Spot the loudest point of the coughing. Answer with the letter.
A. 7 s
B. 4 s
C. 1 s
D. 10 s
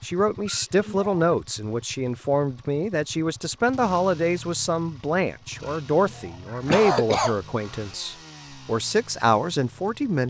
A.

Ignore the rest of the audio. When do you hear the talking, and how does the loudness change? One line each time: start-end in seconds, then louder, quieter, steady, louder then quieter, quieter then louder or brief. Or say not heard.
0.0-10.2 steady.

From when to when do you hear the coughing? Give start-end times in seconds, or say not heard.
0.5-1.3, 5.7-7.3.